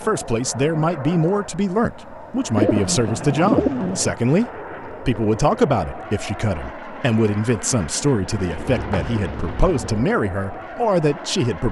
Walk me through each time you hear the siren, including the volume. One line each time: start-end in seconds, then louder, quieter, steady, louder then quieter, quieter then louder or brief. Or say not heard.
not heard.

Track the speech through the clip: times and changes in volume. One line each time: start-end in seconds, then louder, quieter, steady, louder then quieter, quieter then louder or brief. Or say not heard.
0.0-11.6 steady.